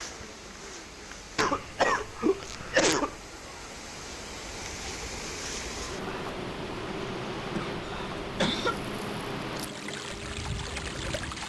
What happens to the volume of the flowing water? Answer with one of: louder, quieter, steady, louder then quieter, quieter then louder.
louder.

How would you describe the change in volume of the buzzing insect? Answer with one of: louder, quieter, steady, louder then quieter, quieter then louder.
louder.